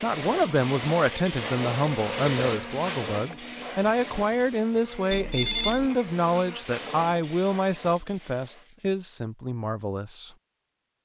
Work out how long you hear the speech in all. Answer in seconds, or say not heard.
10 s.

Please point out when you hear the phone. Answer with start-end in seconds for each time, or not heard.
5.1-5.9.